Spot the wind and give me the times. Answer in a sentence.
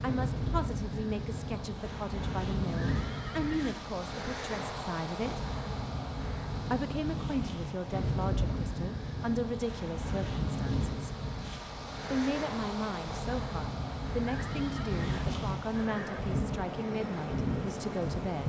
You can hear the wind from 0.0 to 18.4 s.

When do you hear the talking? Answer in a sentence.
You can hear the talking from 0.0 to 5.4 s, from 6.7 to 11.1 s and from 12.1 to 18.4 s.